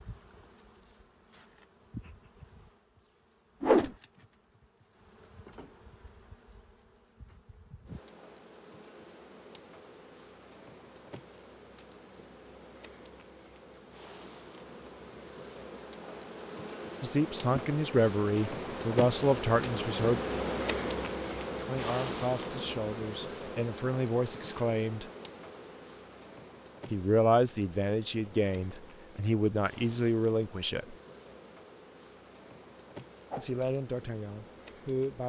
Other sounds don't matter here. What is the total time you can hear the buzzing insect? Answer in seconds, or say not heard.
35 s.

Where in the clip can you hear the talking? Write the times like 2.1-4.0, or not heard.
17.0-20.2, 21.6-25.1, 26.9-30.9, 33.4-35.2.